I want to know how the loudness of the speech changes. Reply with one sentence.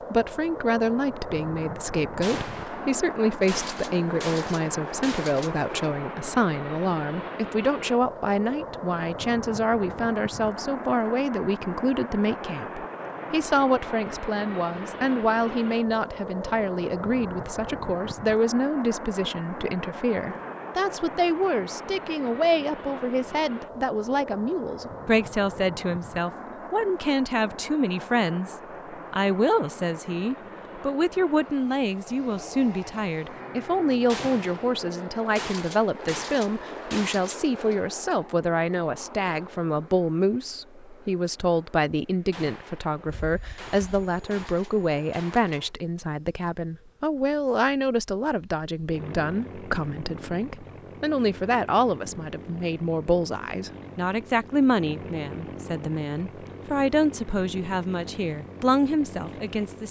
The volume of the speech stays about the same.